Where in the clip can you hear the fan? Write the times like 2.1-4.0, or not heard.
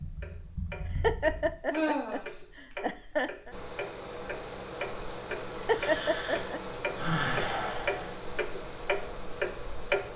3.5-10.1.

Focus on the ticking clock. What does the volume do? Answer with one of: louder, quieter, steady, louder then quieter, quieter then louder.
louder.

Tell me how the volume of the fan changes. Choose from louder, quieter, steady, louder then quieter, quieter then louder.
steady.